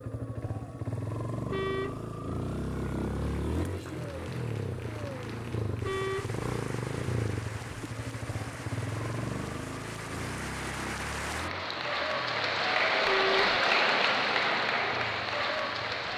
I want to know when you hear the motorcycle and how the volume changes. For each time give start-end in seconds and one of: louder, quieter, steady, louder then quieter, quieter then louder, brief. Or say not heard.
0.0-16.1 quieter.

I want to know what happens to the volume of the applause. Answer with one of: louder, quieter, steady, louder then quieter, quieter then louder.
louder.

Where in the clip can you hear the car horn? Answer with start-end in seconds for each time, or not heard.
1.4-2.0, 5.8-6.3, 13.1-13.6.